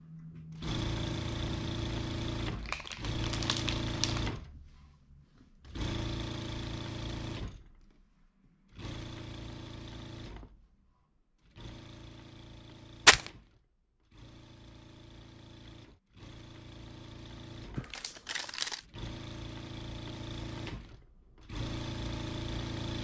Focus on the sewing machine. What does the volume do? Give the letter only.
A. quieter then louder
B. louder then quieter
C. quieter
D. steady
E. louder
A.